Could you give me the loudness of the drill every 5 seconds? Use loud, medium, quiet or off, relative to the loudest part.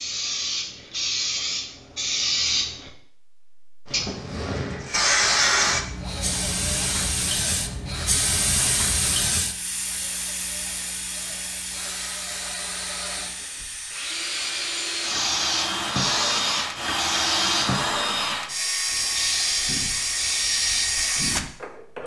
off, medium, medium, loud, loud.